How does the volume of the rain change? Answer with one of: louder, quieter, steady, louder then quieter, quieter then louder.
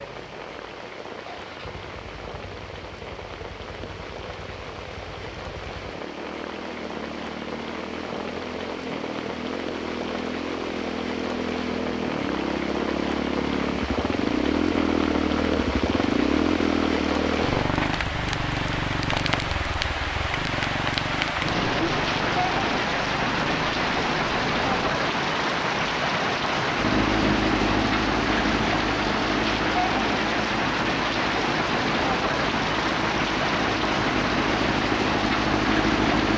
louder.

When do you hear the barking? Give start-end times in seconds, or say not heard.
not heard.